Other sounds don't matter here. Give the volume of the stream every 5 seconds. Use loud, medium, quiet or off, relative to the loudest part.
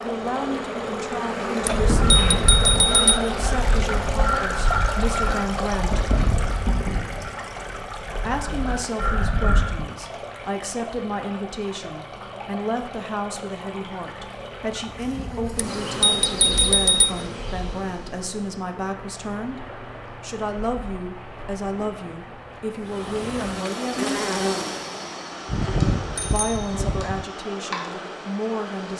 loud, loud, medium, medium, medium, medium.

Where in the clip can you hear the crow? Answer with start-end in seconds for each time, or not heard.
1.6-9.8.